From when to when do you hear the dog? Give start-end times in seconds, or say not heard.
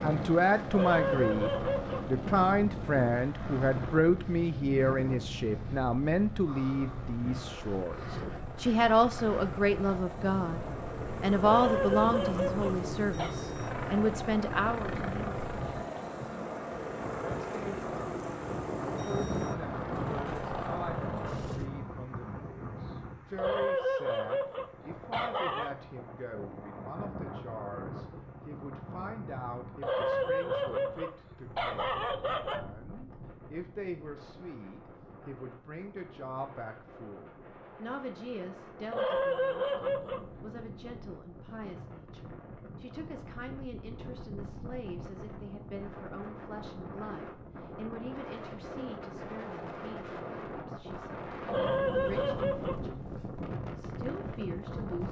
0.7-2.1, 11.4-13.3, 23.4-25.7, 29.8-32.6, 38.9-40.2, 51.5-52.9.